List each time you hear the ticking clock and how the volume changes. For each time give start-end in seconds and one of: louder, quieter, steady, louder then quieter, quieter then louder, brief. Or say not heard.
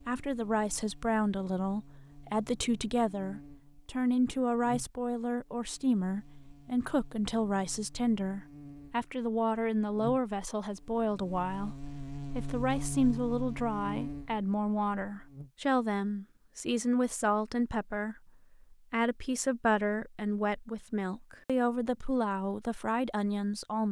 not heard.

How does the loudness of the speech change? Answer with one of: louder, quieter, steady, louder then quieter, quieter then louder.
steady.